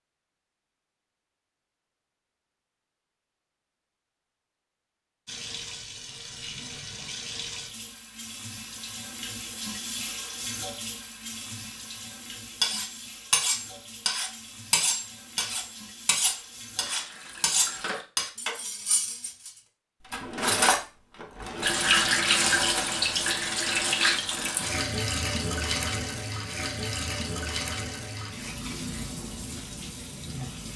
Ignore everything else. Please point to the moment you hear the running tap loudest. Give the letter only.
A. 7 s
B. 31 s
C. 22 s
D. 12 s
C.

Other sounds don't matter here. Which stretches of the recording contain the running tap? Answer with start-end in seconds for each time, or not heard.
5.2-18.1, 21.6-30.7.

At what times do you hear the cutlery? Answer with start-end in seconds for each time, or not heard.
12.6-21.8.